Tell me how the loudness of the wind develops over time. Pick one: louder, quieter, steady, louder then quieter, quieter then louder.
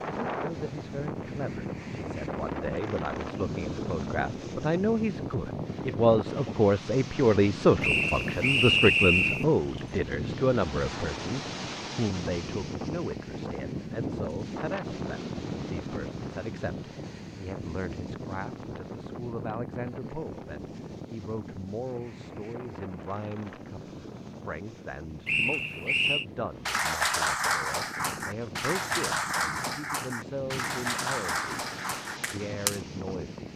quieter.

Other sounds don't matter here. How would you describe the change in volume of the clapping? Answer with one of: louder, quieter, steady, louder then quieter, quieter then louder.
quieter.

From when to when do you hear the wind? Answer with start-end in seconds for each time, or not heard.
0.0-33.5.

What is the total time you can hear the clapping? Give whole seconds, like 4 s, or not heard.
6 s.